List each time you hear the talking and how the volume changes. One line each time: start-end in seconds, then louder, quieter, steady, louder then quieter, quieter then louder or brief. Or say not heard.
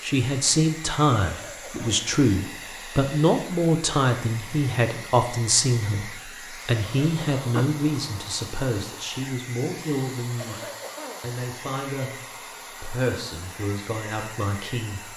0.0-10.6 quieter
11.2-12.2 brief
12.8-15.0 brief.